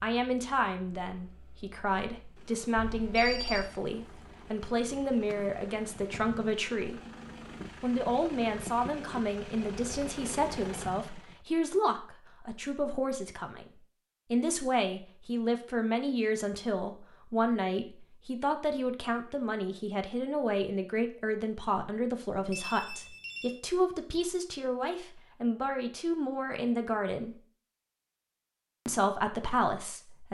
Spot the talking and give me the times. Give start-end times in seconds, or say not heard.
0.0-7.0, 7.8-13.7, 14.3-27.4, 28.9-30.2.